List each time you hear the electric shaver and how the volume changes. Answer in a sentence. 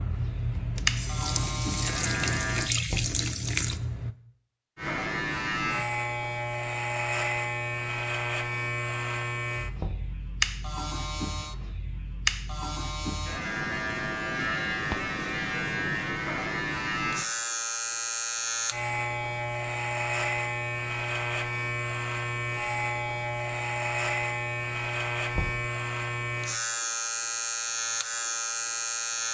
The electric shaver can be heard briefly from 0.0 to 2.7 s; and from 4.8 to 29.2 s, at a steady volume.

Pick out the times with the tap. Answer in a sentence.
The tap can be heard from 0.0 to 4.2 s.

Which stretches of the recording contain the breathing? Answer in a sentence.
You can't hear the breathing here.